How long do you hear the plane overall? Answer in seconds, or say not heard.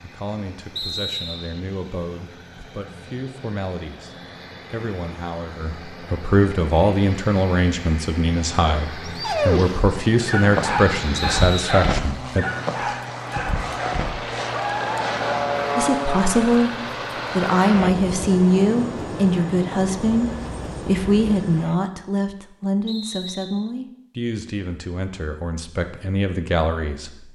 22 s.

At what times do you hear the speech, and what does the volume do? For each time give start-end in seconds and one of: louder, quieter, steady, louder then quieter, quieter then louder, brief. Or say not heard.
0.0-12.4 louder
15.8-16.7 brief
17.4-27.3 quieter.